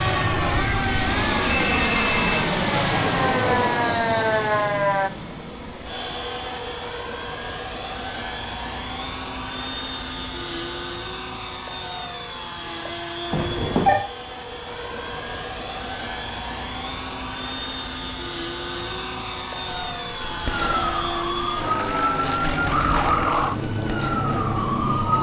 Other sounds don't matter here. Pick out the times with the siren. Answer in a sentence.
You can hear the siren from 0.0 to 5.1 s and from 19.6 to 25.1 s.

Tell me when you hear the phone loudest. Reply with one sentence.
The volume of the phone peaks at 14 seconds.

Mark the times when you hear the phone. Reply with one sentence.
The phone can be heard from 1.4 to 2.3 s and from 13.3 to 14.0 s.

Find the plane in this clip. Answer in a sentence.
You can hear the plane from 0.0 to 25.1 s.